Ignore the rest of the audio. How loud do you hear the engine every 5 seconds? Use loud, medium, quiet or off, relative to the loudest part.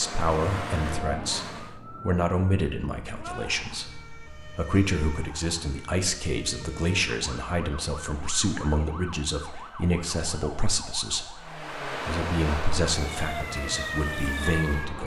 loud, off, loud.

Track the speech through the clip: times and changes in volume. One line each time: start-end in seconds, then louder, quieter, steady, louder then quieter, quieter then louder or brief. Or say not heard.
0.0-15.0 steady.